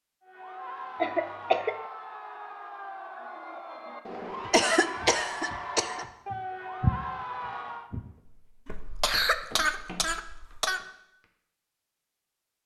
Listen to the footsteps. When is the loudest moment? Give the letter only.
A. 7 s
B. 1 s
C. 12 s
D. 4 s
A.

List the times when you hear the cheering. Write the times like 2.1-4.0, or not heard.
0.2-7.9.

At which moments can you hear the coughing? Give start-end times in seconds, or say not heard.
0.9-1.8, 4.5-6.0, 8.7-10.8.